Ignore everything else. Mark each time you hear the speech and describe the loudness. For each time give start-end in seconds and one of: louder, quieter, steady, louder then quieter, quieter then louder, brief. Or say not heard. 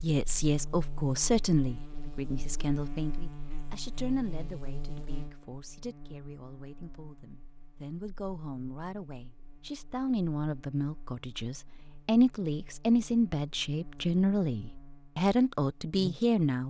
0.0-16.6 quieter then louder.